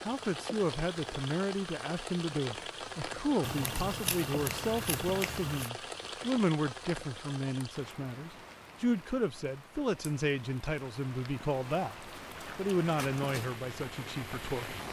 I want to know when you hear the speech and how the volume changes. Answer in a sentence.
You can hear the speech from 0.1 to 14.8 s, at a steady volume.